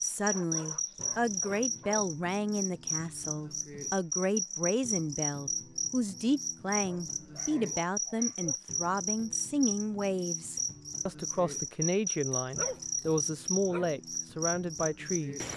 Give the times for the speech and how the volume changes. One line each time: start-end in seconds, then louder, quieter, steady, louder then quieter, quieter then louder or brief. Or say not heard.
0.0-15.4 steady.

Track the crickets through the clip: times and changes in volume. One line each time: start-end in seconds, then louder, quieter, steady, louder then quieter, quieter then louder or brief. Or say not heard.
0.0-15.5 steady.